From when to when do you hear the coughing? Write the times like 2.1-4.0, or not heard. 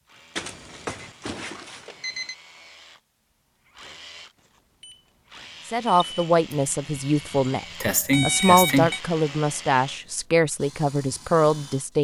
7.8-8.9.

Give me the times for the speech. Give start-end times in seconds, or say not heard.
5.7-11.9.